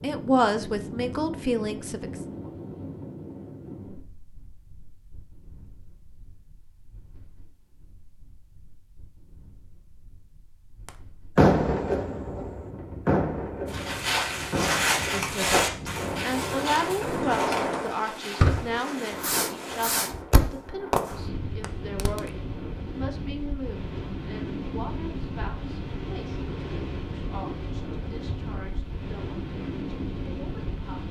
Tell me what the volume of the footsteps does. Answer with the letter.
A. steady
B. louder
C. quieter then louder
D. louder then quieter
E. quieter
E.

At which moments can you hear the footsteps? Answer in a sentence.
The footsteps can be heard from 13.7 to 20.2 s.